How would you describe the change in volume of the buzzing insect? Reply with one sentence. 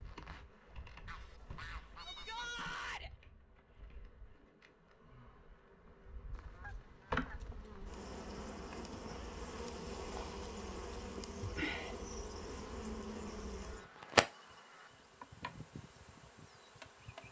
The volume of the buzzing insect goes up.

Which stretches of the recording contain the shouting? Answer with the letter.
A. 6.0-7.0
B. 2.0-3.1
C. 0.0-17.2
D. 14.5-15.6
B.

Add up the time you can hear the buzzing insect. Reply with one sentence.
You can hear the buzzing insect for 17 seconds altogether.